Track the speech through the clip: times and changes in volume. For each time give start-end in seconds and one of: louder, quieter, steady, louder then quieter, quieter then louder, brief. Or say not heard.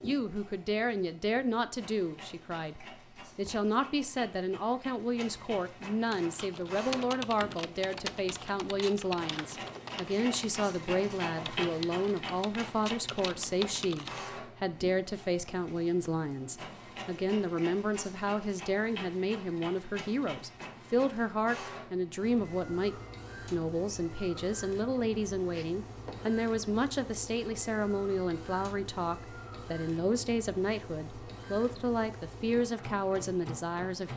0.0-34.1 steady.